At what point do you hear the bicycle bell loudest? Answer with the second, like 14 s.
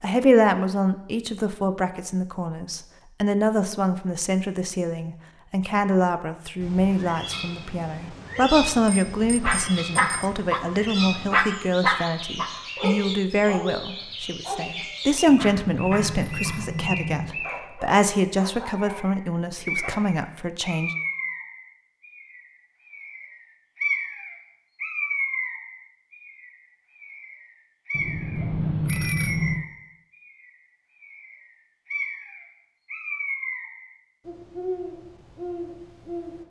29 s.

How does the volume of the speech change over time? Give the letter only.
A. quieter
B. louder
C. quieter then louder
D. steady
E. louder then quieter
D.